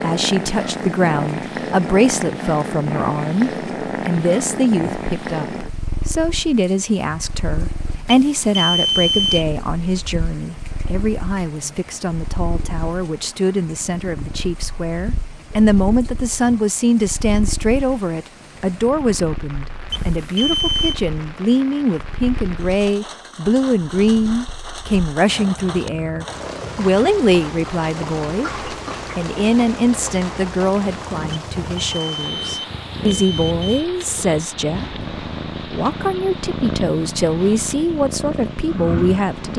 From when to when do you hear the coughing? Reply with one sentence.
You can hear the coughing from 28.4 to 29.1 s.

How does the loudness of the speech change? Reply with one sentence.
The volume of the speech stays about the same.